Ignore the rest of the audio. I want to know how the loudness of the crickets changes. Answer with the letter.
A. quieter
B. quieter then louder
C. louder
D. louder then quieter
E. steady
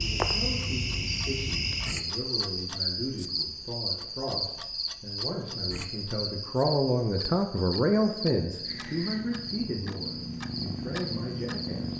A.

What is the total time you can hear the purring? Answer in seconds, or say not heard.
3 s.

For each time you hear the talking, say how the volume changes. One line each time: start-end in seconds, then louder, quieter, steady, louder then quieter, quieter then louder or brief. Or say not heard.
0.0-11.9 louder then quieter.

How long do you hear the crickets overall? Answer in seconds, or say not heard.
12 s.